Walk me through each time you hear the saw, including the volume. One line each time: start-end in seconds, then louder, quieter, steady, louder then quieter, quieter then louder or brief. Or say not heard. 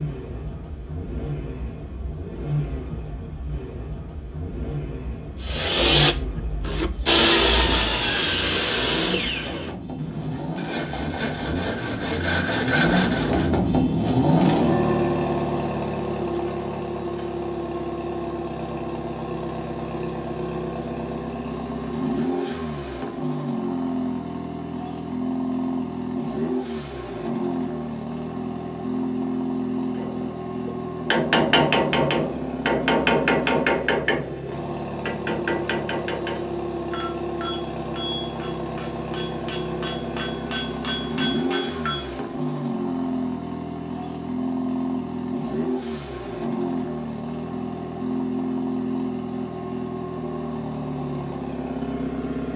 5.4-13.5 quieter then louder.